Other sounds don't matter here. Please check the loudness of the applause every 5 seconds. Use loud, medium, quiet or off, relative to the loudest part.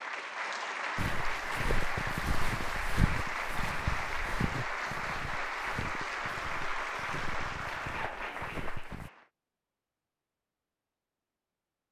loud, loud, off.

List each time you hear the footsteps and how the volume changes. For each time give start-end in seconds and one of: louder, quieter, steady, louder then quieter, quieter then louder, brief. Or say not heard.
0.9-9.1 quieter.